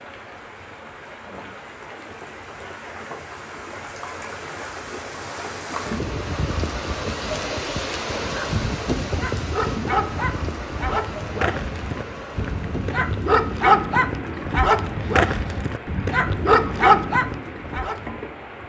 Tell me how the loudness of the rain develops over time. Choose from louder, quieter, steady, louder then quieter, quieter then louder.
louder then quieter.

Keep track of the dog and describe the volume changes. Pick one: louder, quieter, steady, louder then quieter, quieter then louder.
louder.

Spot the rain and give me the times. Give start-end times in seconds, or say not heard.
0.0-18.6.